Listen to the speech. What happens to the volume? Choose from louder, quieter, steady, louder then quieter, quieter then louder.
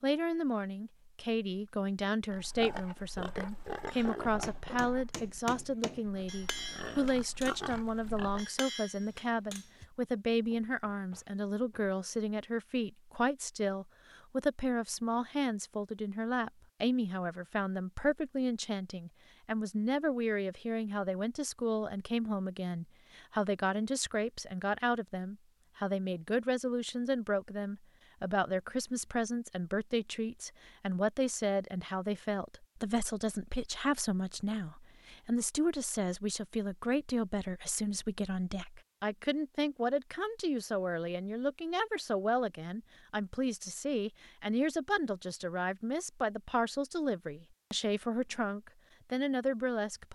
steady.